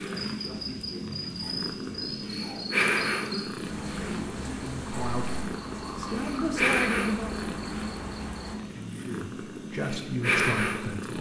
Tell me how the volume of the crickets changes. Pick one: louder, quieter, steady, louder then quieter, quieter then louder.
steady.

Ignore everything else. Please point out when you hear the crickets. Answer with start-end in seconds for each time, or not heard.
0.1-8.6.